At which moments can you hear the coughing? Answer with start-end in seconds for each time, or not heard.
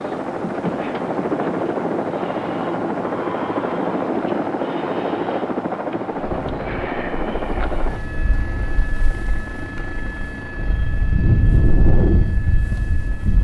not heard.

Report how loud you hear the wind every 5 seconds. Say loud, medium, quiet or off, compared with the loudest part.
off, quiet, loud.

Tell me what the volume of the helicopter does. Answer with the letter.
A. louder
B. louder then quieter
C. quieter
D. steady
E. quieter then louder
C.